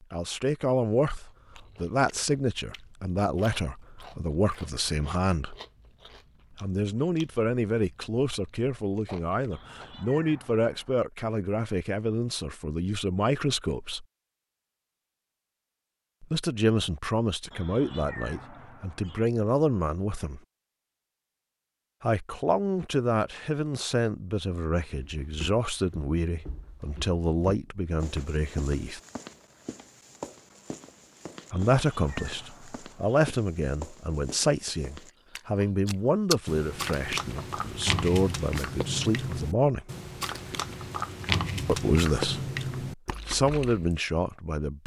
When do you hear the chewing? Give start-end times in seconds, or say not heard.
1.2-10.1, 35.4-44.0.